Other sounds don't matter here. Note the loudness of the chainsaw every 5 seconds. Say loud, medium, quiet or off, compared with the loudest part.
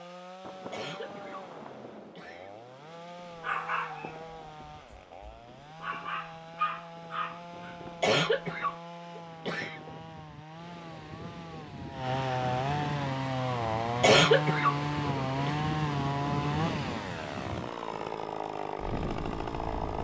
quiet, quiet, loud, loud.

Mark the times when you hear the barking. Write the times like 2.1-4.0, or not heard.
3.3-8.8.